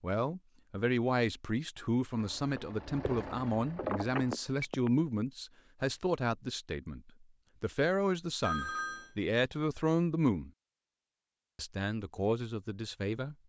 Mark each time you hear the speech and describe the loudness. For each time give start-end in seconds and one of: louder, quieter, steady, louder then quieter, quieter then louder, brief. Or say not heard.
0.0-10.5 steady
11.6-13.3 brief.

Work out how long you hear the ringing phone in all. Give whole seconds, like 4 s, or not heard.
2 s.